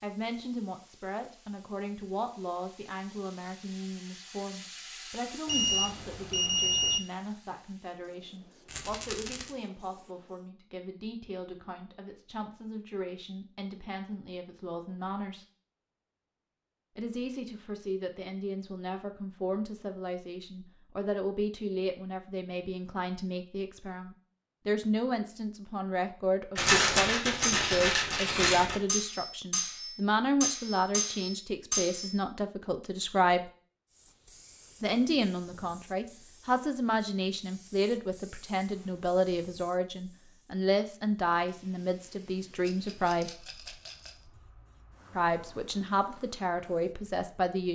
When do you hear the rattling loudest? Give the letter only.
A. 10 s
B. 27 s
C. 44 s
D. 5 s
B.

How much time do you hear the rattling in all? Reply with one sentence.
The rattling can be heard for 5 seconds in total.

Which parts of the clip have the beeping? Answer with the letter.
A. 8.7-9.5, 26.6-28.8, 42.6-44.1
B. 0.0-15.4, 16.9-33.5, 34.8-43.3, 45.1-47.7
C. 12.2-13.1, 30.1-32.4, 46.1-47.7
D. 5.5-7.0
D.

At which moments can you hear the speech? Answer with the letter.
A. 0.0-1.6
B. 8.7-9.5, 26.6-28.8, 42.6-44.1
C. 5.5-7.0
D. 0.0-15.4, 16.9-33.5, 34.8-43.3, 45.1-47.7
D.